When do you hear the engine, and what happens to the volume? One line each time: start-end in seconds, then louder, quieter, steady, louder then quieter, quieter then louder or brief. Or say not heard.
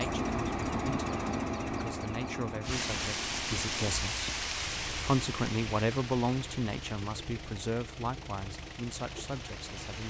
0.0-10.0 quieter.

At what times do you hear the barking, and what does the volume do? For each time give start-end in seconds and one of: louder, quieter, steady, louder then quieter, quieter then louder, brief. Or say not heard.
not heard.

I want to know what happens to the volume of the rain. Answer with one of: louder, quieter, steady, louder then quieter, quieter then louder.
quieter.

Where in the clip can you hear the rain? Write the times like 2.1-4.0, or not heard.
2.6-10.0.